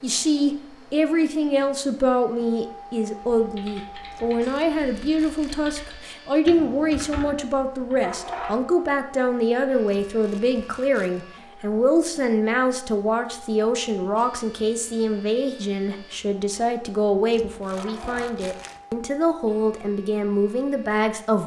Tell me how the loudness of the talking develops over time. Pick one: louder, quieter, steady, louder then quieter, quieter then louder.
steady.